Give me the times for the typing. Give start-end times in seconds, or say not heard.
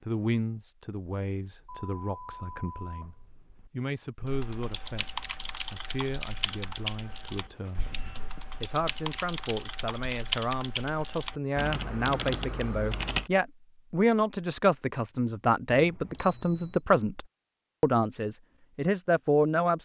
4.2-13.3.